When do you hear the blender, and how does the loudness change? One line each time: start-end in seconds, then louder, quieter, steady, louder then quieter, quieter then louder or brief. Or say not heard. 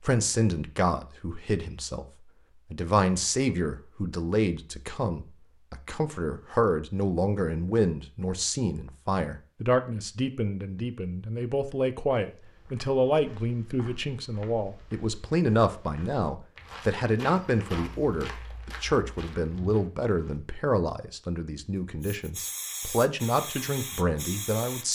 not heard.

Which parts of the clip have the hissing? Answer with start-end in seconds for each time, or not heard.
22.0-24.9.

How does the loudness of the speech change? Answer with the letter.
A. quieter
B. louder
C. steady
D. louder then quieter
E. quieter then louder
C.